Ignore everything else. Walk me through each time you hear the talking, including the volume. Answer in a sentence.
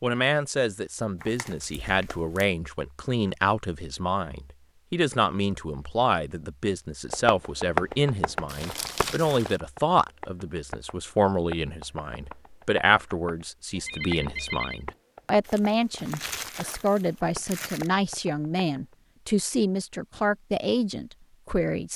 You can hear the talking from 0.0 to 21.9 s, at a steady volume.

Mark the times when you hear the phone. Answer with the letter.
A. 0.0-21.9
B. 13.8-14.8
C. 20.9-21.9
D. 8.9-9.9
B.